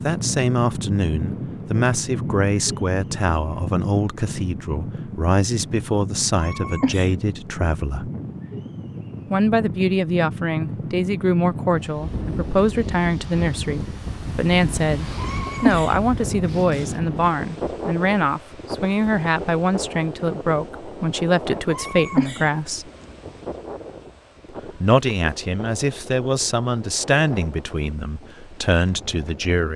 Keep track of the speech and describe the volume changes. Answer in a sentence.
The volume of the speech stays about the same.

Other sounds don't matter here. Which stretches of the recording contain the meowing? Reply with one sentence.
You can hear the meowing from 6.3 to 7.2 s, from 15.2 to 15.9 s and from 21.7 to 22.5 s.